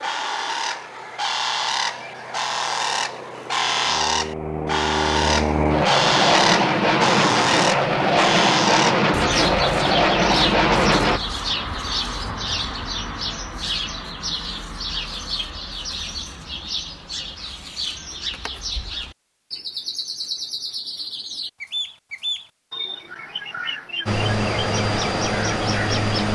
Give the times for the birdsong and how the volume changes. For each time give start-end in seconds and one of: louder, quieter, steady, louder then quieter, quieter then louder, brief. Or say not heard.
0.0-26.2 quieter.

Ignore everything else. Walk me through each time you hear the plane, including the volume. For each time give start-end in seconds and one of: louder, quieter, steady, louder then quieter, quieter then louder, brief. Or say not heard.
0.0-11.2 louder
24.1-26.2 brief.